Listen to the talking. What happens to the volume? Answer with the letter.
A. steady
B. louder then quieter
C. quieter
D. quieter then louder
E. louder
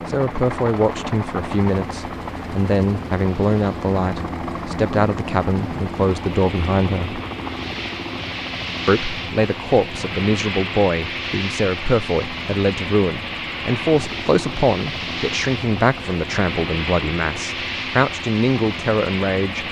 A.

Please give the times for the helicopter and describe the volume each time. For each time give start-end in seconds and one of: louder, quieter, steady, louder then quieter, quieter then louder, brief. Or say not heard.
0.0-19.6 steady.